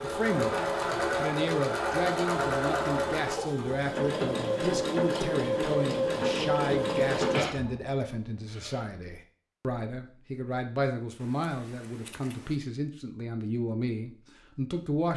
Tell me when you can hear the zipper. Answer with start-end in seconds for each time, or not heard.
not heard.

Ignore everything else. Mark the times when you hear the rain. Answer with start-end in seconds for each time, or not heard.
not heard.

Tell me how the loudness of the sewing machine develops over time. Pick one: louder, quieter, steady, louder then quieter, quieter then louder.
steady.